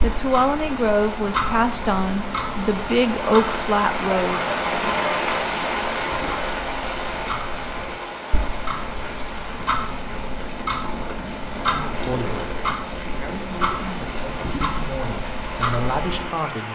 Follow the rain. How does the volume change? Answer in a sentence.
The volume of the rain goes up, then down.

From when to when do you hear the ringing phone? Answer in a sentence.
The ringing phone can't be heard in this clip.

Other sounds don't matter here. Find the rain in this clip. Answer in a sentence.
The rain can be heard from 0.0 to 16.6 s.